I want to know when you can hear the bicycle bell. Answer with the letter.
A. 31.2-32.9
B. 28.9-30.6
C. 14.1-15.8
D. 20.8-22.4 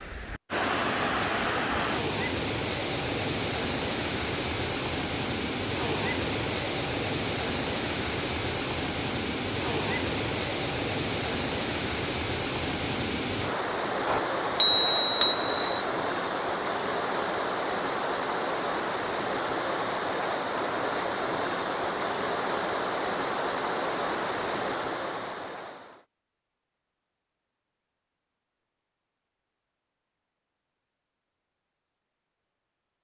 C.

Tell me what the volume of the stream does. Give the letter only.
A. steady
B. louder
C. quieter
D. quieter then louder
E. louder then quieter
A.